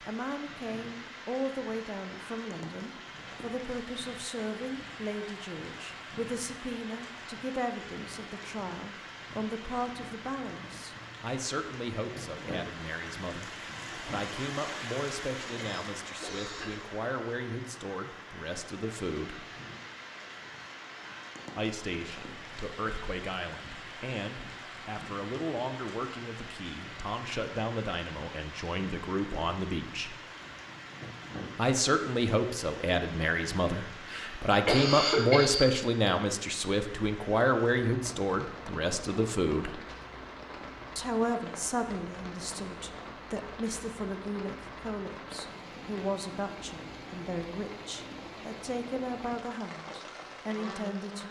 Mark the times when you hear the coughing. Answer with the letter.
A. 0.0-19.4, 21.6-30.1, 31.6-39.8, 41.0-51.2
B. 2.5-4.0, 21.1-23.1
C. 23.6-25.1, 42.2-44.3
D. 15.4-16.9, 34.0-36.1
D.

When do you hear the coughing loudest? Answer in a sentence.
The loudest moment of the coughing is at 35 seconds.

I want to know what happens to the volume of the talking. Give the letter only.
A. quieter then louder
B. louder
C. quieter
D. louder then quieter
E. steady
D.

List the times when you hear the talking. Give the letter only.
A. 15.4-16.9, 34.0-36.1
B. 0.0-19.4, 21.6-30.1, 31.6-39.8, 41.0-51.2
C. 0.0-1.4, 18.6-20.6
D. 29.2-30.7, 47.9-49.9
B.